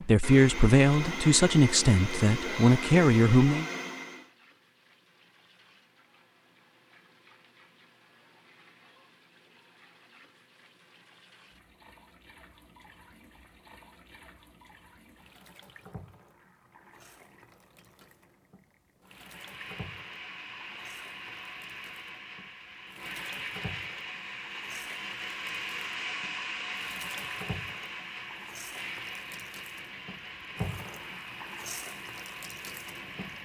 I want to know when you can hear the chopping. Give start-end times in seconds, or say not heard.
not heard.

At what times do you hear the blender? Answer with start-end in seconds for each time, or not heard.
0.0-4.3, 19.1-33.3.